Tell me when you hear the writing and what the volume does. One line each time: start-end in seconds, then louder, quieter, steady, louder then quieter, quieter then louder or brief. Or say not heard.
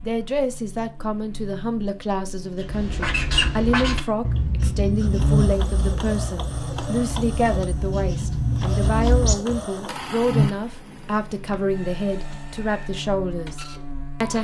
2.6-9.7 quieter then louder.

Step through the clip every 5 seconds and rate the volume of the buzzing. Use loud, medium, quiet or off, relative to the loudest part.
medium, loud, loud.